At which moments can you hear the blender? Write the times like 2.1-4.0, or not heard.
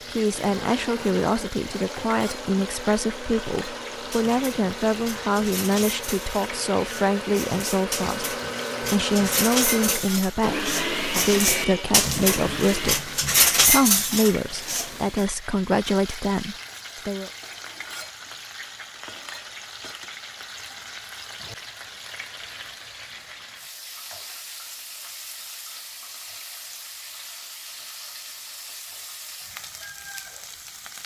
0.0-13.0.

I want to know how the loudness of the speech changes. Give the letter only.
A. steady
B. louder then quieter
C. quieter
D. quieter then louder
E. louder
A.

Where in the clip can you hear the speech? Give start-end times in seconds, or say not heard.
0.1-17.3.